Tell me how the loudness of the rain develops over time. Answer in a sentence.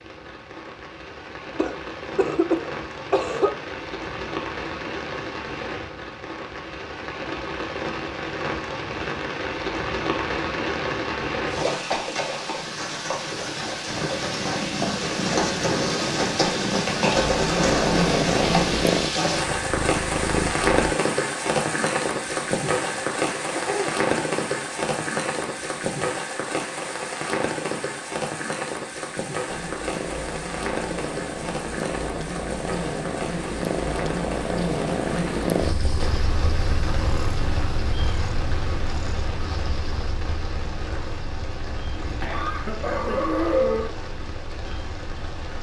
The volume of the rain goes up, then down.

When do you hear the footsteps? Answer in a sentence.
You can't hear the footsteps here.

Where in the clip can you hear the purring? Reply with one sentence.
You can hear the purring from 13.8 to 20.7 s and from 29.4 to 45.5 s.